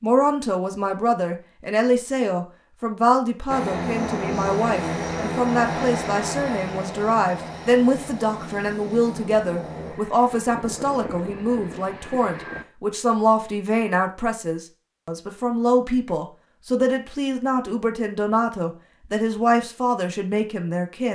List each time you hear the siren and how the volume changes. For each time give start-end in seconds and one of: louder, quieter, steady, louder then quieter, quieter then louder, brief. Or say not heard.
not heard.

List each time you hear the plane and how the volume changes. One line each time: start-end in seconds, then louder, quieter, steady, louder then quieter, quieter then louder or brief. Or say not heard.
3.5-12.7 quieter.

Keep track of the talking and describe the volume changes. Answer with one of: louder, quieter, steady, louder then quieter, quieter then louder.
steady.